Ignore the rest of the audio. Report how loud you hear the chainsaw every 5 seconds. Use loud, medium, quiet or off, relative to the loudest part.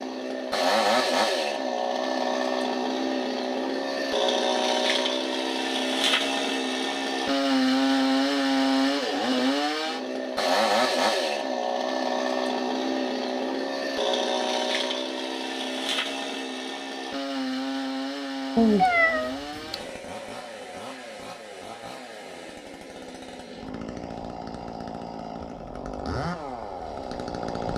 loud, loud, loud, medium, quiet, medium.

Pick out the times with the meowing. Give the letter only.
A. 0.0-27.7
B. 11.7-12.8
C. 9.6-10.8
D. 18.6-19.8
D.